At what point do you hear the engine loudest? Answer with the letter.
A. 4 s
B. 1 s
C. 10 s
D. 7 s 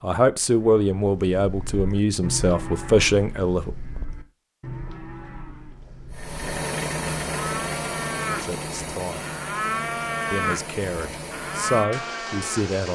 D.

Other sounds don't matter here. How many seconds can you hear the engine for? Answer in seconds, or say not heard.
7 s.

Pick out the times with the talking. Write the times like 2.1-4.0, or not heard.
0.0-3.8, 8.2-9.3, 10.3-12.9.